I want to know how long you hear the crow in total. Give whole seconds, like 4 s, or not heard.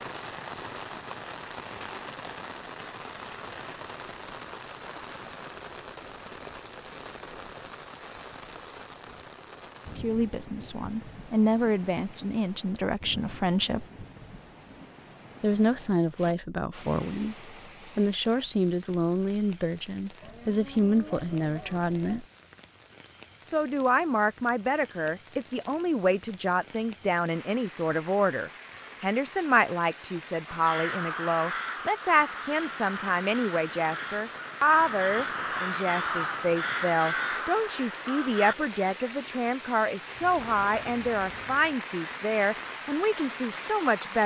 8 s.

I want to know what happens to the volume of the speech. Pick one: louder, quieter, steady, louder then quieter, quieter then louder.
steady.